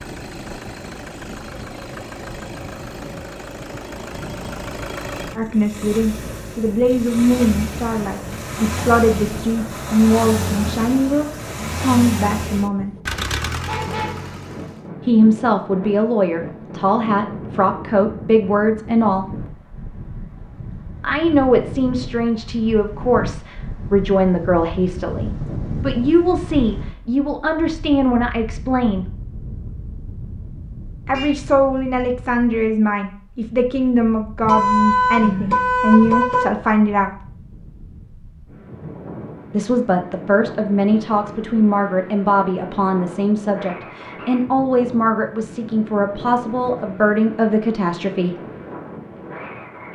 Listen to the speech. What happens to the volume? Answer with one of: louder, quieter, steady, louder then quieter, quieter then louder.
steady.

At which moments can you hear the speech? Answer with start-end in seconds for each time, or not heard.
5.3-12.9, 15.1-19.2, 21.0-29.1, 31.1-37.1, 39.5-48.4.